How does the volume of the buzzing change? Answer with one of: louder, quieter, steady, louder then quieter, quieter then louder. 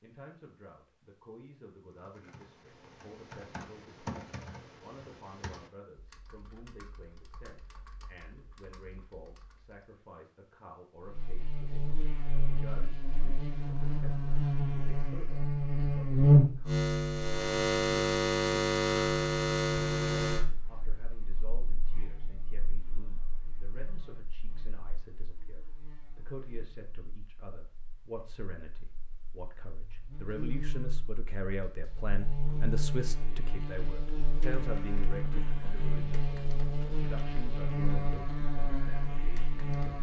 quieter then louder.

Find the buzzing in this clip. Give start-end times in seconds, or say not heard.
11.1-39.9.